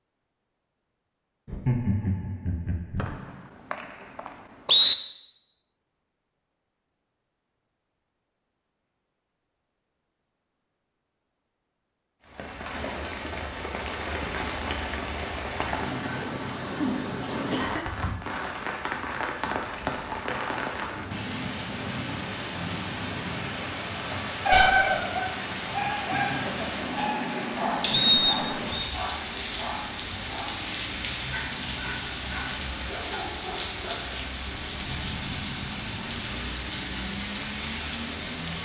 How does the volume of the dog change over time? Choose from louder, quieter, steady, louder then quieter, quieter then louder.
quieter.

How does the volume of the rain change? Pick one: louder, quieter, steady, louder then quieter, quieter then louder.
steady.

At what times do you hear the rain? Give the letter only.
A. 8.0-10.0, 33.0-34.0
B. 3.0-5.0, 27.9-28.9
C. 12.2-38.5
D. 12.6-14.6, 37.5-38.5
C.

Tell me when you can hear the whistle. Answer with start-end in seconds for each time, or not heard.
3.0-5.0, 27.9-28.9.